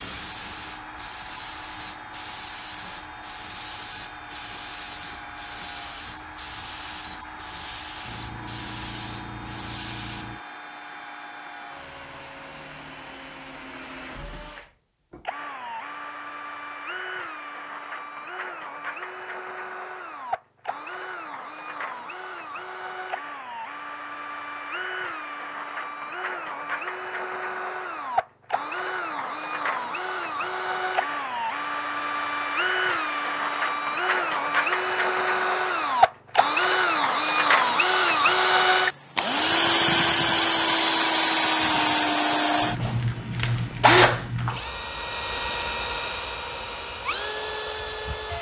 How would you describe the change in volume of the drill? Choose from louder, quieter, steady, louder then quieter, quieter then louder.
louder.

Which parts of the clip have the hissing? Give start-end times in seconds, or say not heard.
0.0-10.4.